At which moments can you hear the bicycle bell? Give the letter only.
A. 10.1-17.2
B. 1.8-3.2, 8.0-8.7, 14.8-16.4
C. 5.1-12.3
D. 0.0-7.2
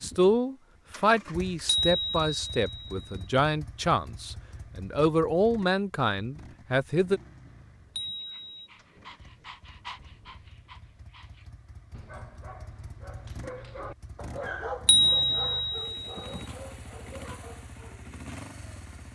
B.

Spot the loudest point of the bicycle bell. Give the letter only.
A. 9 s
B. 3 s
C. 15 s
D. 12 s
C.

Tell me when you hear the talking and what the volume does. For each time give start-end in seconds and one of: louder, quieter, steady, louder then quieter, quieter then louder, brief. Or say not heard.
0.0-7.2 steady.